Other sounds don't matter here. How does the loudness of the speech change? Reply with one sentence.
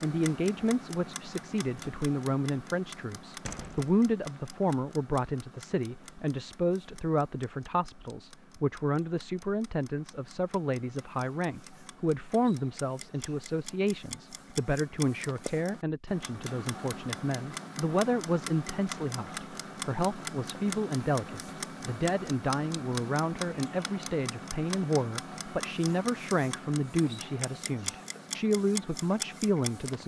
The loudness of the speech stays about the same.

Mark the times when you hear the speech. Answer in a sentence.
You can hear the speech from 0.0 to 30.0 s.